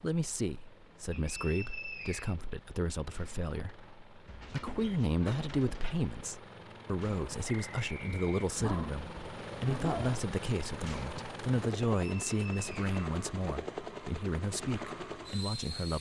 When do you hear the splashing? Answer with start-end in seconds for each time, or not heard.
not heard.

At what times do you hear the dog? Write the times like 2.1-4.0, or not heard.
4.2-6.0, 8.6-10.2.